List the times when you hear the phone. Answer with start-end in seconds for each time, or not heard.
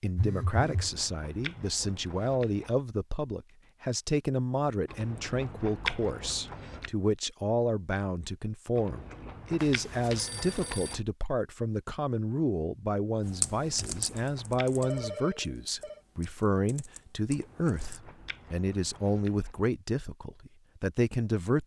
0.1-0.9, 9.6-10.9, 14.8-16.0.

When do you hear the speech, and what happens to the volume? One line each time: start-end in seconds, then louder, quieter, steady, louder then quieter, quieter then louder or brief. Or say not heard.
0.0-21.6 steady.